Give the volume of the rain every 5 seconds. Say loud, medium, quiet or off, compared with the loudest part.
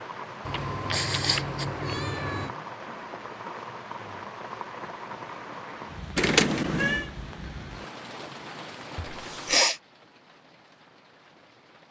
loud, loud, quiet.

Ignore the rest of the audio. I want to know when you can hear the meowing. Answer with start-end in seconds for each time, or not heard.
0.5-2.5, 6.2-7.1.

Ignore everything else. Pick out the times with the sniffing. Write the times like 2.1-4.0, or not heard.
0.9-1.6, 9.0-9.8.